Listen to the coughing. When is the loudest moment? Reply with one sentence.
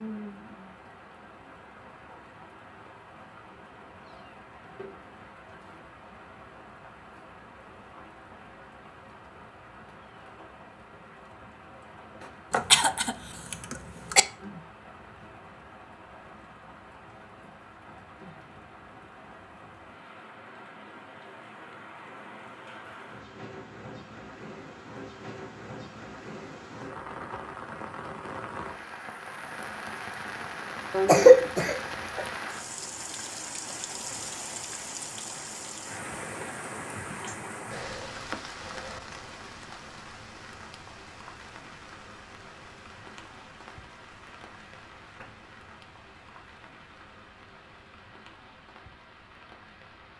The volume of the coughing peaks at 31 seconds.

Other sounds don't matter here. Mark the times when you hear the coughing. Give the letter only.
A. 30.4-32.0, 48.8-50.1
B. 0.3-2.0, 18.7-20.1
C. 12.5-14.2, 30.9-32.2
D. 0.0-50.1
C.